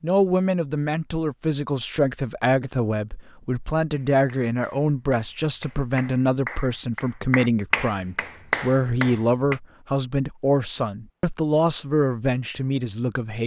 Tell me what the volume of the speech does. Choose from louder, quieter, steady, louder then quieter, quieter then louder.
steady.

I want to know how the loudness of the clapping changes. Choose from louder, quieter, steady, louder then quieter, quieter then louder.
louder.